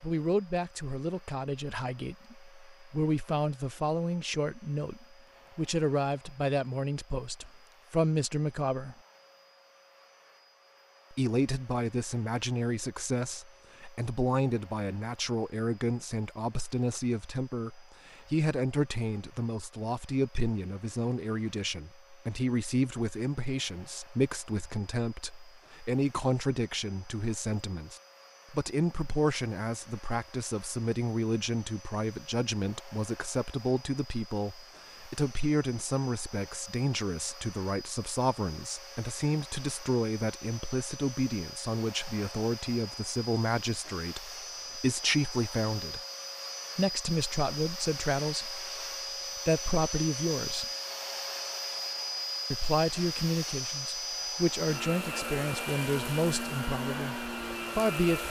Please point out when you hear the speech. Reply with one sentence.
The speech can be heard from 0.0 to 8.9 s, from 11.1 to 46.0 s, from 46.8 to 48.6 s, from 49.5 to 50.6 s and from 52.5 to 58.2 s.